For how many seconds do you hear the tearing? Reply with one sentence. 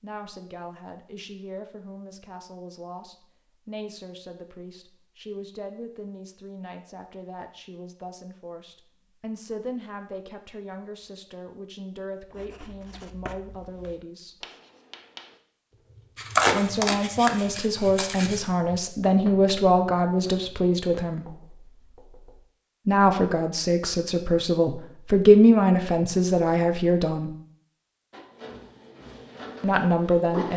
The tearing can be heard for 2 seconds in total.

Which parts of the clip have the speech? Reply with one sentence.
You can hear the speech from 0.0 to 14.3 s, from 16.4 to 21.2 s, from 22.9 to 27.3 s and from 29.6 to 30.5 s.